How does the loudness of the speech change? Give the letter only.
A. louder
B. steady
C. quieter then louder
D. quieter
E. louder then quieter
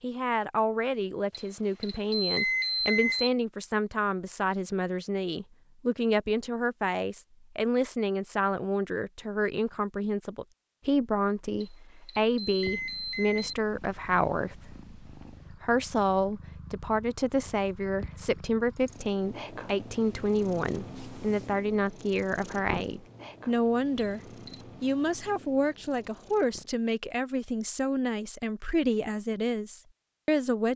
B.